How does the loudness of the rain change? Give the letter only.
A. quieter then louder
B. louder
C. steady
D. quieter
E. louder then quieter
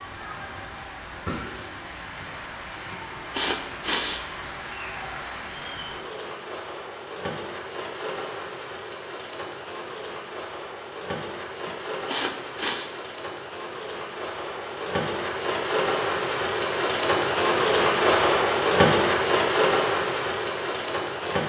B.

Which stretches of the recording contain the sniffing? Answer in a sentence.
The sniffing can be heard from 2.9 to 4.2 s and from 11.7 to 12.9 s.